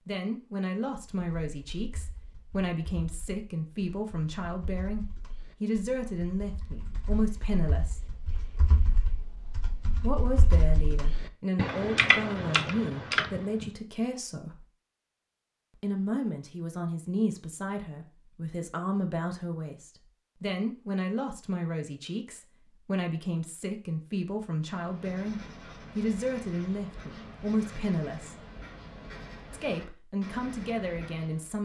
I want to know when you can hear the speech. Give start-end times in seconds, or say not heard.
0.1-8.1, 10.0-14.7, 15.8-28.4, 29.5-31.6.